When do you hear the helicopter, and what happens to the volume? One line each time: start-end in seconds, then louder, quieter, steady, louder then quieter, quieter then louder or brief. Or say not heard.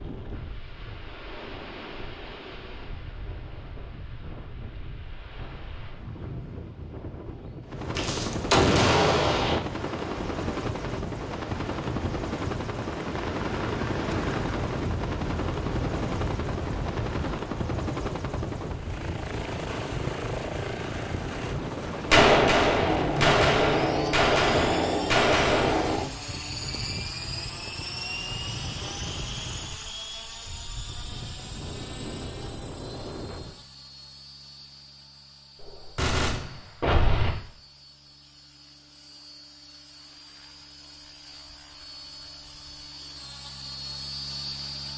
7.6-44.9 quieter.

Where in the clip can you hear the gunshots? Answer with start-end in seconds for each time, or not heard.
8.0-9.6, 22.1-26.1, 35.6-37.3.